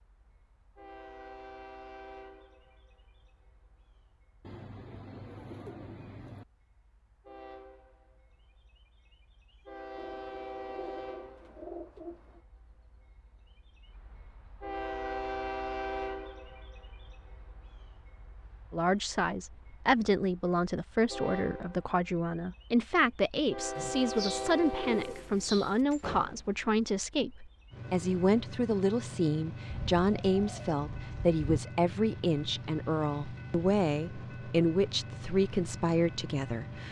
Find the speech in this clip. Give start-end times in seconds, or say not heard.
18.7-36.8.